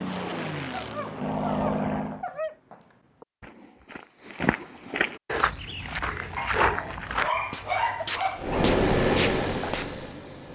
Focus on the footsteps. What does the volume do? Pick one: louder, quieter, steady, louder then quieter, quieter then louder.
louder then quieter.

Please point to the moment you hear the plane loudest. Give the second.
9 s.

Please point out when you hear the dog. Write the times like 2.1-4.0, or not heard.
0.7-2.5, 6.3-8.7.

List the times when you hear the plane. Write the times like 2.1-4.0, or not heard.
0.0-2.2, 8.3-10.5.